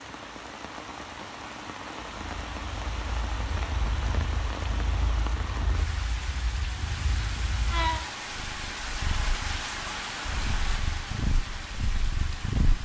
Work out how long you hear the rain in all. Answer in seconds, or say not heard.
13 s.